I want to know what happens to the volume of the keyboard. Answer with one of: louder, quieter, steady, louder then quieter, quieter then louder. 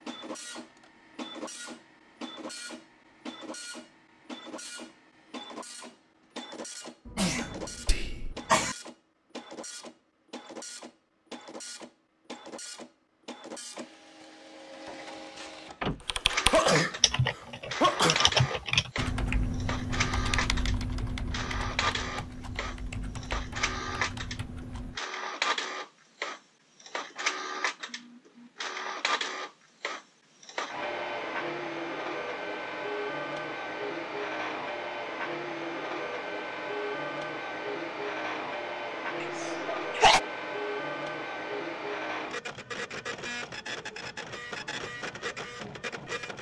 quieter.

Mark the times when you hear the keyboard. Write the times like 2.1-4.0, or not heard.
16.0-25.0.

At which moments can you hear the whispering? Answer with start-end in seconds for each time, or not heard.
7.8-8.3.